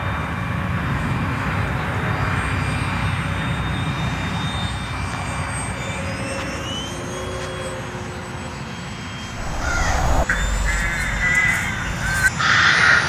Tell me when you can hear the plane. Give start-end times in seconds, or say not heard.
0.0-13.0.